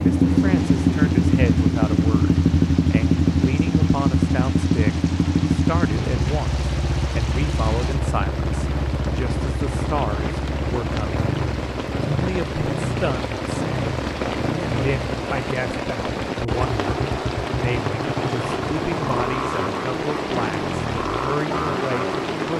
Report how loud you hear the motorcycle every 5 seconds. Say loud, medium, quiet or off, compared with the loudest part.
loud, medium, medium, medium, medium.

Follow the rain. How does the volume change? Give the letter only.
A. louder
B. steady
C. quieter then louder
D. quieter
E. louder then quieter
A.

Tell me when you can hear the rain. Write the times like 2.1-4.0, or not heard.
0.0-22.5.